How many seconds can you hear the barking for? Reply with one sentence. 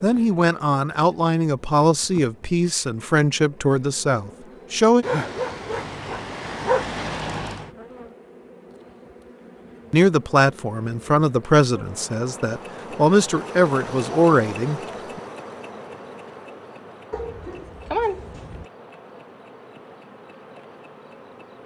The barking can be heard for 4 seconds in total.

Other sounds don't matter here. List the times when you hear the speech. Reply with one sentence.
You can hear the speech from 0.0 to 5.0 s and from 9.9 to 15.2 s.